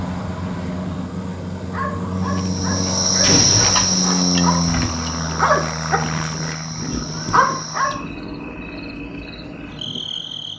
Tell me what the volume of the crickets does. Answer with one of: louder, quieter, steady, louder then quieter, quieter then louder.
quieter.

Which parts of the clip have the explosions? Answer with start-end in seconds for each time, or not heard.
3.2-4.1.